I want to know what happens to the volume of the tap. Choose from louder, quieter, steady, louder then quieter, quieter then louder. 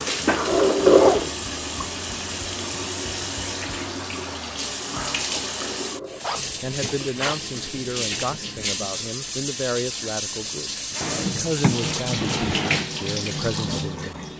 steady.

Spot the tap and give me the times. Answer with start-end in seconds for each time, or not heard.
0.0-14.3.